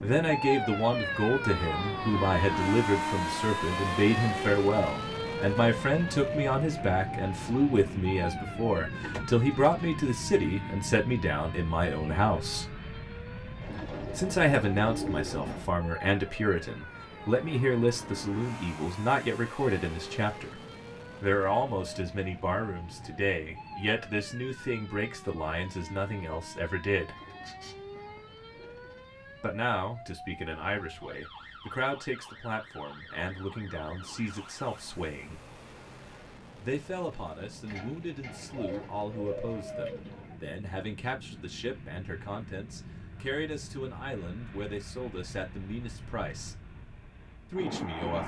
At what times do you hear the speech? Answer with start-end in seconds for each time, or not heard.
0.0-12.7, 14.2-20.6, 21.2-27.1, 29.4-35.4, 36.6-46.5, 47.5-48.2.